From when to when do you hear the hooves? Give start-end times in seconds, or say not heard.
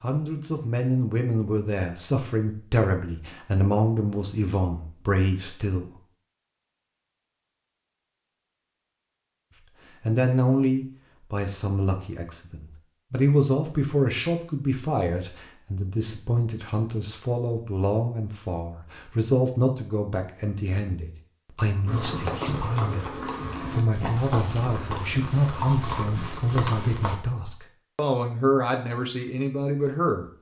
21.9-27.1.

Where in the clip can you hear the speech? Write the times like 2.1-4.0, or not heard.
0.0-5.9, 10.0-30.3.